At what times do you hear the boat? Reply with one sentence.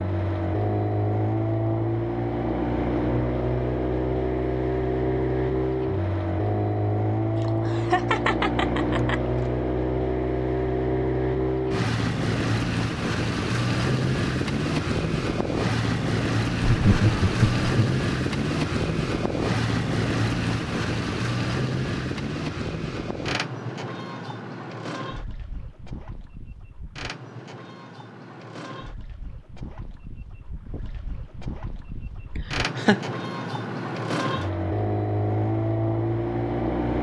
You can hear the boat from 0.0 to 36.9 s.